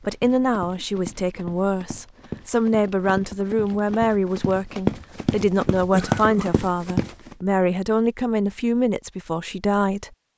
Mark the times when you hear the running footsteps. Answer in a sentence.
The running footsteps can be heard from 0.0 to 7.5 s.